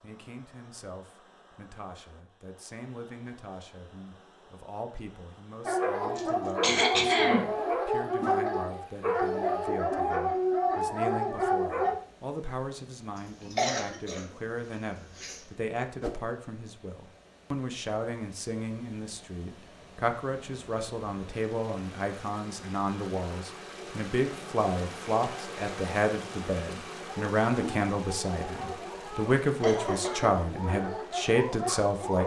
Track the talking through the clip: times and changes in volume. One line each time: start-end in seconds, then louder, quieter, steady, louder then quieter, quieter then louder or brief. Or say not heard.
0.0-32.2 louder.